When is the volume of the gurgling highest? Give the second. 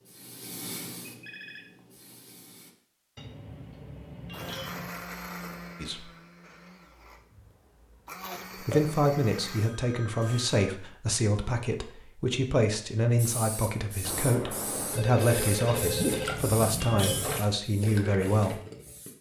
16 s.